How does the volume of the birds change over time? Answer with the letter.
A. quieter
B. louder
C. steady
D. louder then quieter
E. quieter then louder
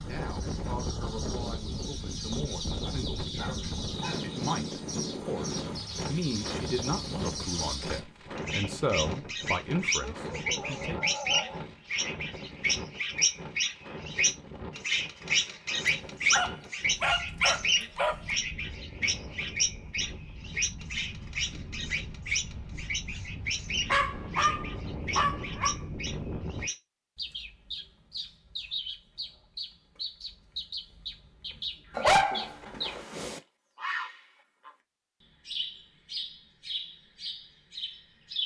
D.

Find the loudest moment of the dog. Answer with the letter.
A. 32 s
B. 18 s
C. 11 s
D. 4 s
A.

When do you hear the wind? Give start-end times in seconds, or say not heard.
0.0-26.7.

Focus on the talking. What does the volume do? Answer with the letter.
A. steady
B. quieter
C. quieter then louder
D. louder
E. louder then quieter
D.